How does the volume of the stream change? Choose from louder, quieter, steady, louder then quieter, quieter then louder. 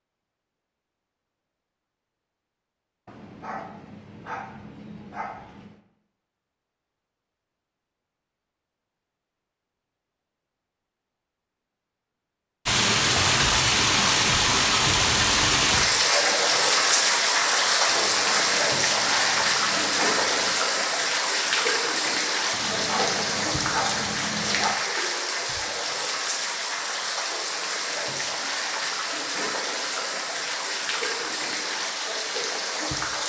quieter.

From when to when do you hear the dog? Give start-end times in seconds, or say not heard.
3.0-5.8, 17.9-20.6, 22.5-24.9.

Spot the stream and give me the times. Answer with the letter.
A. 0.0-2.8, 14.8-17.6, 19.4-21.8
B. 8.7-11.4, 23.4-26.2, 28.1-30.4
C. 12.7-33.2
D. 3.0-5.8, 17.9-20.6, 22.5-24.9
C.